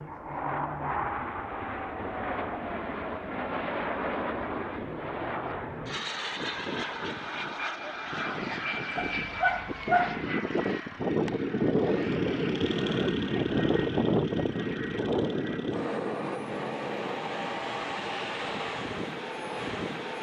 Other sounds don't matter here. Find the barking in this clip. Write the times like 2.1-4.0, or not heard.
8.9-10.2.